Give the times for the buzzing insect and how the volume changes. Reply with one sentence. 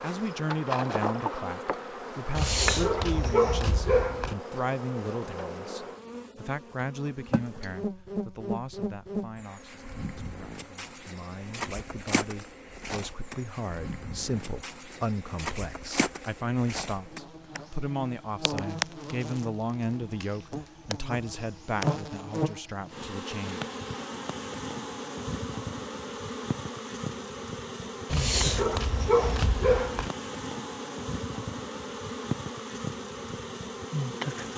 The buzzing insect can be heard from 0.0 to 34.5 s, at a steady volume.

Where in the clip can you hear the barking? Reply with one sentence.
You can hear the barking from 2.3 to 4.3 s and from 28.1 to 30.1 s.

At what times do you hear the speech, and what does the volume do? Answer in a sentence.
The speech can be heard from 0.0 to 23.6 s, getting quieter then louder.